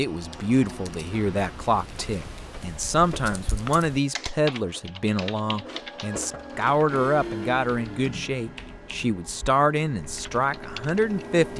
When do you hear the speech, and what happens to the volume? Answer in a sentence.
The speech can be heard from 0.0 to 11.5 s, at a steady volume.